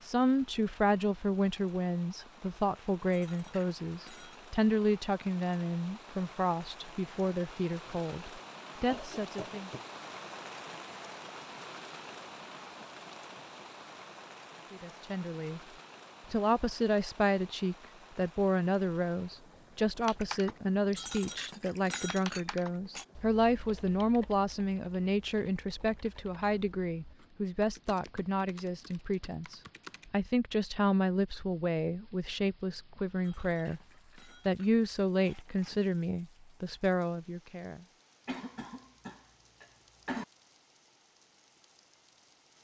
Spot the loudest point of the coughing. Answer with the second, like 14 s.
40 s.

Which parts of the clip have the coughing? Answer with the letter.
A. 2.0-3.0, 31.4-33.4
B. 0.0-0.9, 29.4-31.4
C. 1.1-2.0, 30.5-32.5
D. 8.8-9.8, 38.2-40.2
D.